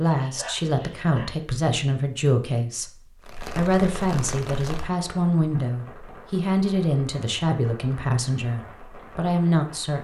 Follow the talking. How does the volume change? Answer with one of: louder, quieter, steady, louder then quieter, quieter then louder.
steady.